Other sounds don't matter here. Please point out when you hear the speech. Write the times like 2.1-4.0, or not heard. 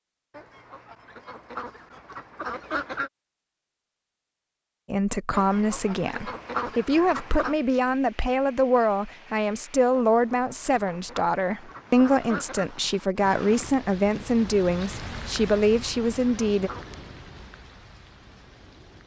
4.9-16.7.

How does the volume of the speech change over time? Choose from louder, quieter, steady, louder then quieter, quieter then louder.
steady.